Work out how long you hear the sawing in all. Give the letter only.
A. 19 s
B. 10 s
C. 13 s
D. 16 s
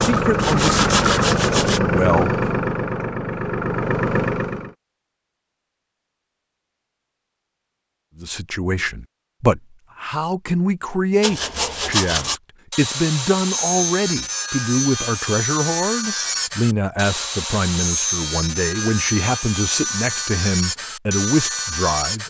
C.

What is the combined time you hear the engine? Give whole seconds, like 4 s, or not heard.
5 s.